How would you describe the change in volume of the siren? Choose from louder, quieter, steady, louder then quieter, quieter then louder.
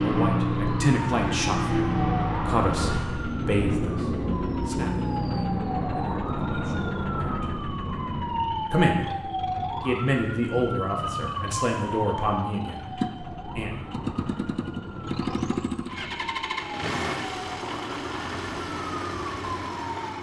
quieter.